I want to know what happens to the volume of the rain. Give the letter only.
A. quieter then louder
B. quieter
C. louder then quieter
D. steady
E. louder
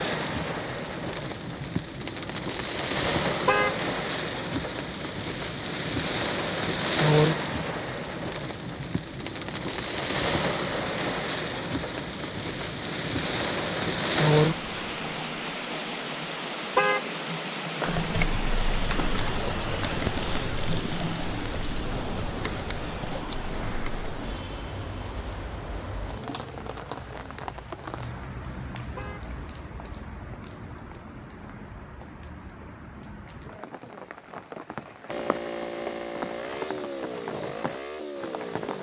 B.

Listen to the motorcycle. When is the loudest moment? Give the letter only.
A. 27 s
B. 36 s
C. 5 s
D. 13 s
B.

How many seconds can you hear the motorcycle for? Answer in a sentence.
The motorcycle can be heard for 4 seconds in total.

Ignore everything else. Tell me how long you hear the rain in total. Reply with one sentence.
The rain can be heard for 39 seconds in total.